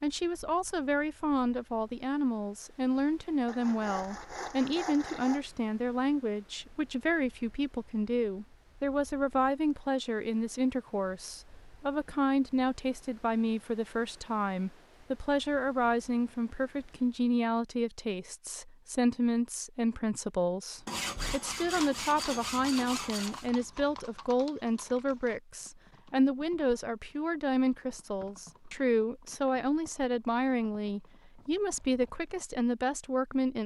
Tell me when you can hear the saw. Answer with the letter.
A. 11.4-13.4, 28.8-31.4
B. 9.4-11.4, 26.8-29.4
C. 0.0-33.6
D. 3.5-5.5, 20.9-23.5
D.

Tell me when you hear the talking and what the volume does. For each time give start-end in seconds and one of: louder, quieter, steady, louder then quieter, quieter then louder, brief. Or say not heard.
0.0-33.6 steady.